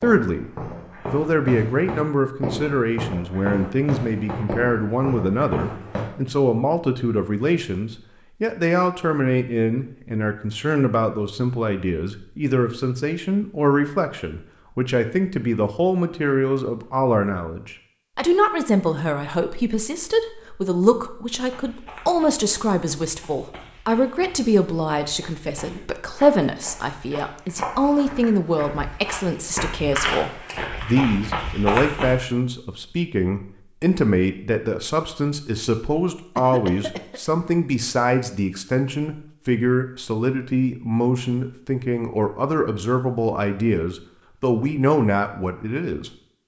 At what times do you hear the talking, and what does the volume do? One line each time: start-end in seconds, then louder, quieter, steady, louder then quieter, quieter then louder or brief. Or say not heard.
0.0-46.1 steady.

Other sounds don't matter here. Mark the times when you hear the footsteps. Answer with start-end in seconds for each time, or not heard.
0.0-6.1, 21.4-32.1.